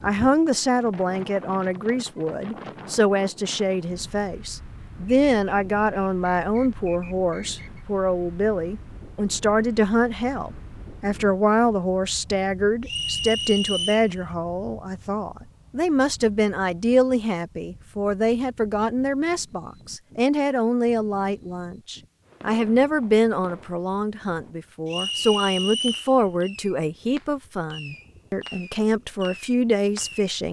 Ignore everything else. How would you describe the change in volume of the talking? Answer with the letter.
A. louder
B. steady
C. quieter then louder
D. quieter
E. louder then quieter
B.